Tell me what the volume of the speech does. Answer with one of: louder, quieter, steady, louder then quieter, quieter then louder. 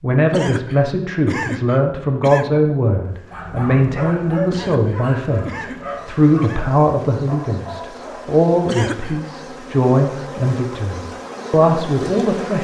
steady.